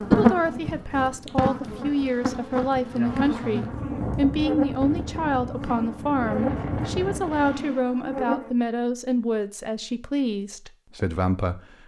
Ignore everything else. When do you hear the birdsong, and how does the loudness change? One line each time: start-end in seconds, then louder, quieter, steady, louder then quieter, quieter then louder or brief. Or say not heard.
not heard.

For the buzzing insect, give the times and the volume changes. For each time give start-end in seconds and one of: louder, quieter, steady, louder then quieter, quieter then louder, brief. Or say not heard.
0.0-8.5 quieter.